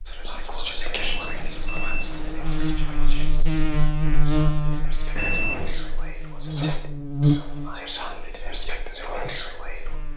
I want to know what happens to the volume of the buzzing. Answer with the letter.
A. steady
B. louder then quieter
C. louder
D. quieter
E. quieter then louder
B.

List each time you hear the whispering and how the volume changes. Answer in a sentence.
You can hear the whispering from 0.1 to 9.9 s, getting quieter then louder.